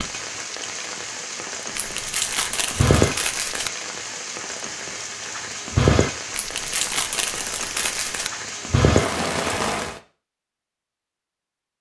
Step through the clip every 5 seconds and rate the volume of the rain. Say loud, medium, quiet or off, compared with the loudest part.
loud, loud, off.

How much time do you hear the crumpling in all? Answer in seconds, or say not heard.
4 s.